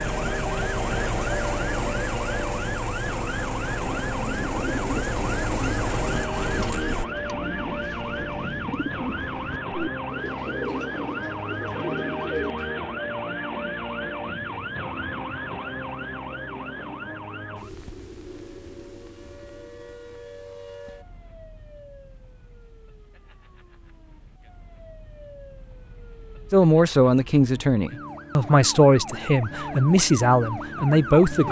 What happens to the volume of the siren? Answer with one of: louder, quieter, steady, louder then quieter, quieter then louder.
quieter then louder.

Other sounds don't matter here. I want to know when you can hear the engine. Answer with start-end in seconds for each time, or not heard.
0.0-7.0.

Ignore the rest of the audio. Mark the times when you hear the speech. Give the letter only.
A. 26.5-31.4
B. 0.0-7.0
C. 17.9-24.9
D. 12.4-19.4
A.